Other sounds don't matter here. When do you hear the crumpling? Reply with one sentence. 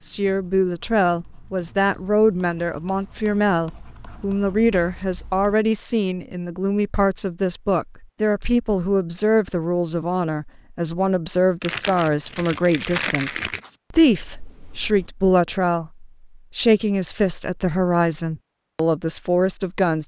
The crumpling can be heard from 11.6 to 13.6 s.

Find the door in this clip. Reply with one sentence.
You can't hear the door here.